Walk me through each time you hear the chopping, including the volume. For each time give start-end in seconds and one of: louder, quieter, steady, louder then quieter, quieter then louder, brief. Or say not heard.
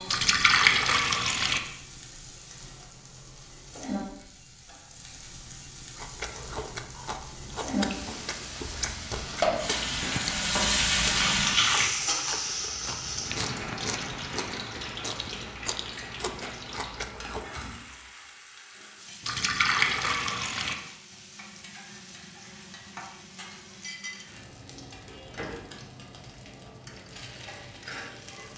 not heard.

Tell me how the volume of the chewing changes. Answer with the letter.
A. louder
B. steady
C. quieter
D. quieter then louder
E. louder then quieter
B.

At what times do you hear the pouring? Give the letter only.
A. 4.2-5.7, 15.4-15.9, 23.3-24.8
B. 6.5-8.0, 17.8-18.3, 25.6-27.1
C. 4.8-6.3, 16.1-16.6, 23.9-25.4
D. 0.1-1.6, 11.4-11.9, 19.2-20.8
D.